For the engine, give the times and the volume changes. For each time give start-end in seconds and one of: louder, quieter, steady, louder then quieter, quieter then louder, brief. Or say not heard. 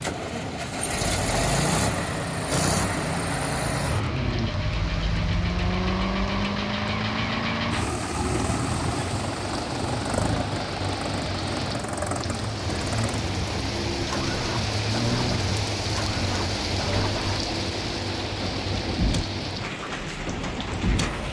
0.0-21.2 quieter.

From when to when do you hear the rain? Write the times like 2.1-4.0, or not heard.
0.0-21.2.